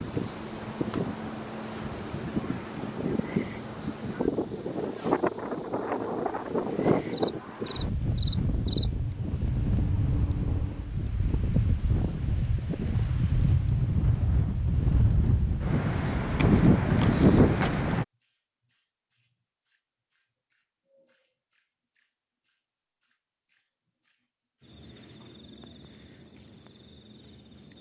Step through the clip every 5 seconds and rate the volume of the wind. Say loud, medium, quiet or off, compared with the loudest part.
medium, medium, medium, loud, off, off.